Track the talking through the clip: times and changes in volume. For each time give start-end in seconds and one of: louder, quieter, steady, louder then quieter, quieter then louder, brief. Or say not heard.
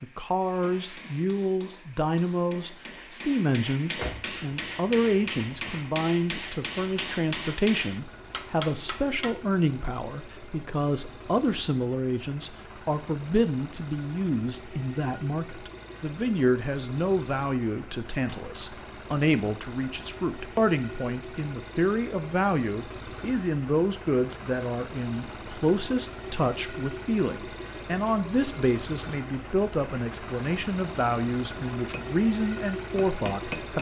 0.0-33.7 steady.